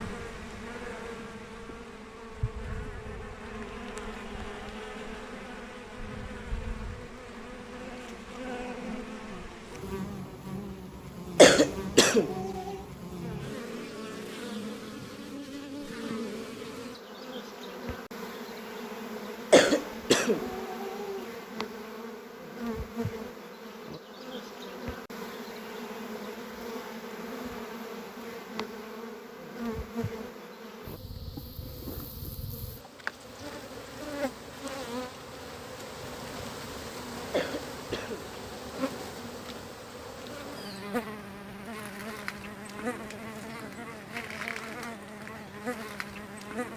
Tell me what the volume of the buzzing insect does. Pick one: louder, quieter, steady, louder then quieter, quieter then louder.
steady.